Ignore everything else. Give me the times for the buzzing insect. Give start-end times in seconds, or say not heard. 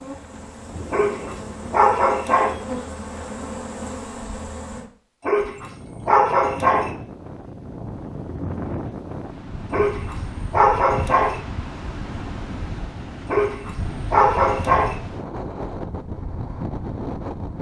0.0-4.8.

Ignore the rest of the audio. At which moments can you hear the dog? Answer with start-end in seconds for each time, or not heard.
0.9-2.5, 5.2-6.9, 9.7-11.4, 13.2-14.9.